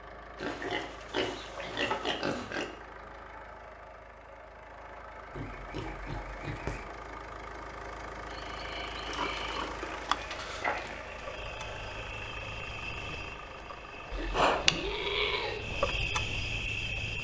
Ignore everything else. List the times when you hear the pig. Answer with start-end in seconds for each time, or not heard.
0.3-2.7, 5.3-6.8, 9.1-11.3, 14.1-15.7.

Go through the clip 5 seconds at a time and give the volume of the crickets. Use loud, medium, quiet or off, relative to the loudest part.
off, medium, loud, loud.